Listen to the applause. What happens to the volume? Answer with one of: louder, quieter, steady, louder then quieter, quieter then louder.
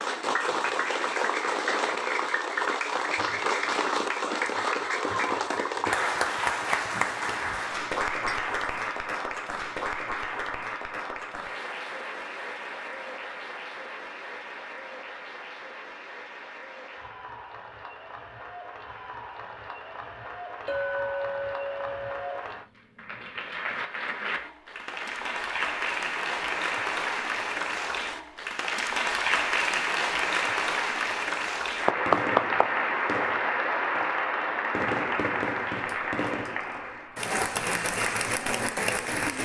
quieter then louder.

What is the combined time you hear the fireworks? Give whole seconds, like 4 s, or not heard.
5 s.